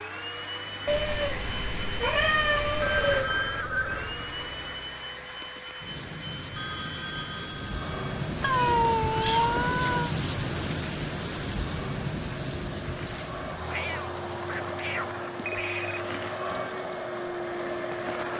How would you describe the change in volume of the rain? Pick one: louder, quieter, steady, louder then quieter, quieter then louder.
louder then quieter.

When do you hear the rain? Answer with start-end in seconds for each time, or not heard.
0.0-18.3.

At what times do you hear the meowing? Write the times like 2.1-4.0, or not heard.
0.8-3.3, 8.4-10.2, 13.7-16.0.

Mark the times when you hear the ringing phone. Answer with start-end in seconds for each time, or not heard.
2.8-4.2, 6.5-8.3, 15.4-16.0.